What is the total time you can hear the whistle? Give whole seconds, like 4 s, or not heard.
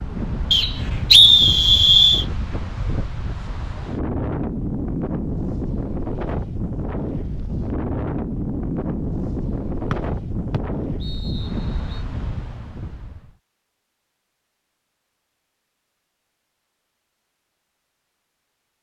4 s.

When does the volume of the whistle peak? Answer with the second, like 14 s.
1 s.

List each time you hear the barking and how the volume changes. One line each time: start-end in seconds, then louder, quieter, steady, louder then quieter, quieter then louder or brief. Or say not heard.
not heard.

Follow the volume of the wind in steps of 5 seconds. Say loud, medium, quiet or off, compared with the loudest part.
loud, loud, loud, off.